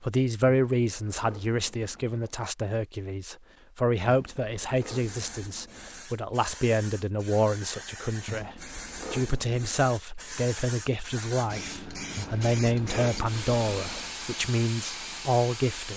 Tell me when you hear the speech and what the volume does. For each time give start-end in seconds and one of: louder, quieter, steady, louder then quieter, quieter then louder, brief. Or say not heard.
0.0-15.9 steady.